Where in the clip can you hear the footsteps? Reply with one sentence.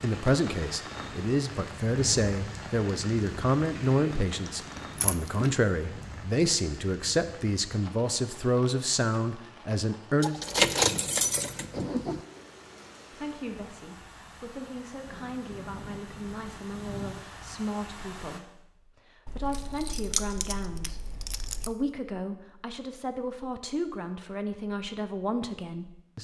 The footsteps can't be heard in this clip.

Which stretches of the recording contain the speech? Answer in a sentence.
The speech can be heard from 0.0 to 10.3 s and from 12.6 to 26.1 s.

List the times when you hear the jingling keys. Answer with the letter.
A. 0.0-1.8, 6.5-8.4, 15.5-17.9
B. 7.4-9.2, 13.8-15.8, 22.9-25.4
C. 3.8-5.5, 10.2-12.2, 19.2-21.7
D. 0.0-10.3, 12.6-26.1
C.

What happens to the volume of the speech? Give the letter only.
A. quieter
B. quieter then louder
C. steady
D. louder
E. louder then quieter
A.